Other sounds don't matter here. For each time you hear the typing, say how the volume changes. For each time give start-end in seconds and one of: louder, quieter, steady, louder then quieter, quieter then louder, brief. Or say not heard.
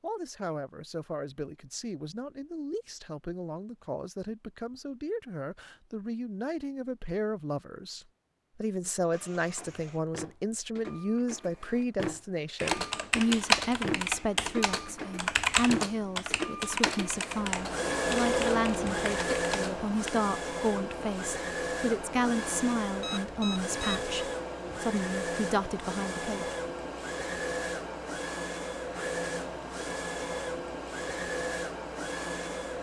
12.6-20.1 quieter.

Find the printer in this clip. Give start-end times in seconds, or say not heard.
9.1-32.7.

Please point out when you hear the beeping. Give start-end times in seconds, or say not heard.
23.0-24.1.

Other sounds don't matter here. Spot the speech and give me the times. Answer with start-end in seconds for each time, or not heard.
0.0-26.6.